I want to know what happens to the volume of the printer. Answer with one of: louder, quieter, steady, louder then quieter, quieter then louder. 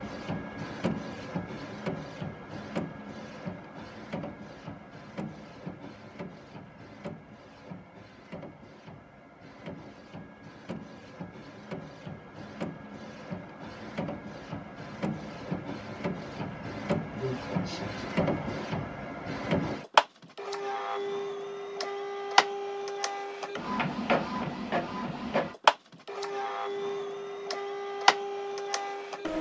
quieter then louder.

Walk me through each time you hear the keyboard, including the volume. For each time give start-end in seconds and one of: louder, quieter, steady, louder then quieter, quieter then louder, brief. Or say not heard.
not heard.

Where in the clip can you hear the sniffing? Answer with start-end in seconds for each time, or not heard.
17.2-18.1.